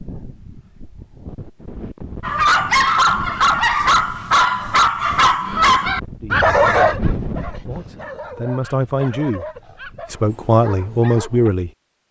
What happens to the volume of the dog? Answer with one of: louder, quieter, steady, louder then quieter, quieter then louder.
quieter.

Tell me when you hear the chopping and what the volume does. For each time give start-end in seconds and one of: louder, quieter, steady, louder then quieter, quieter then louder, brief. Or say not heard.
not heard.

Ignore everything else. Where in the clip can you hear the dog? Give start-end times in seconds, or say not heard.
2.2-11.5.